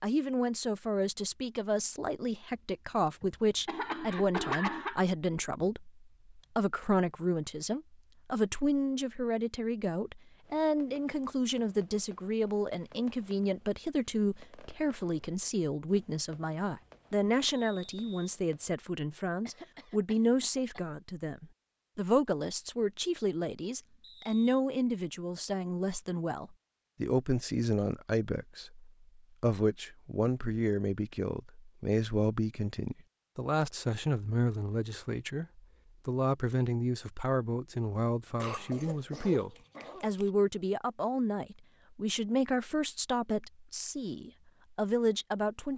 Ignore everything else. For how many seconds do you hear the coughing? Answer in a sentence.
The coughing can be heard for 5 seconds in total.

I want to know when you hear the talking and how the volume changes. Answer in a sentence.
The talking can be heard from 0.0 to 45.7 s, at a steady volume.